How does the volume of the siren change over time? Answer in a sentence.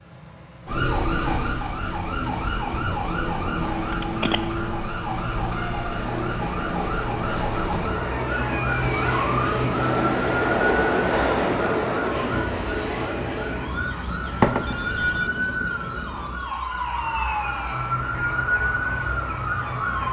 The volume of the siren stays about the same.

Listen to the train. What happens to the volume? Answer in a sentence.
The loudness of the train goes up, then down.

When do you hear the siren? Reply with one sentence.
The siren can be heard from 0.0 to 20.0 s.